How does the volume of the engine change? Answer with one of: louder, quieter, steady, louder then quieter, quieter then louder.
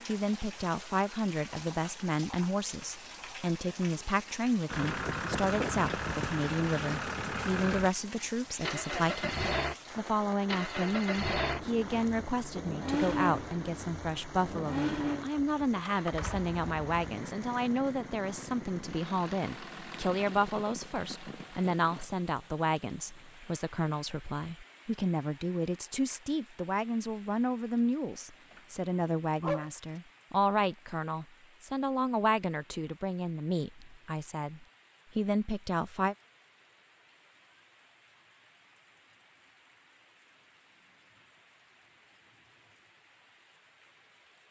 quieter.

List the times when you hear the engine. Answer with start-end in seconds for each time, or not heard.
4.7-22.1.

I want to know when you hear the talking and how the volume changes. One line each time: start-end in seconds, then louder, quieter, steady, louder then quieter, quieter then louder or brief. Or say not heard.
0.1-36.1 steady.